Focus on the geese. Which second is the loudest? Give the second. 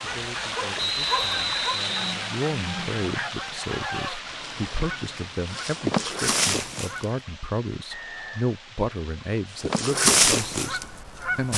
10 s.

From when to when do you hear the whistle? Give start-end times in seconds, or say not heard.
0.8-2.1, 7.9-8.6.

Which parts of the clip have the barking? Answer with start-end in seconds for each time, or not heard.
0.0-1.8.